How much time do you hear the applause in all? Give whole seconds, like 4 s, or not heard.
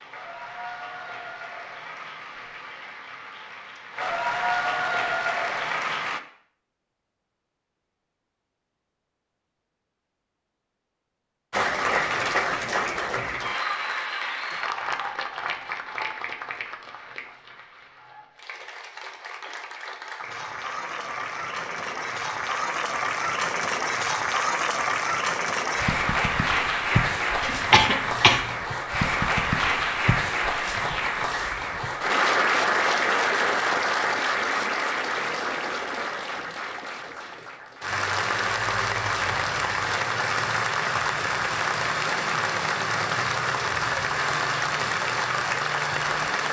41 s.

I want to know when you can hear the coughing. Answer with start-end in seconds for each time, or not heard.
27.4-28.4.